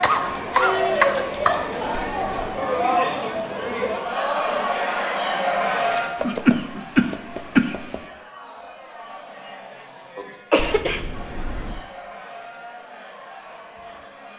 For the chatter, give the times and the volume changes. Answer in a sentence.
You can hear the chatter from 0.0 to 14.3 s, getting quieter.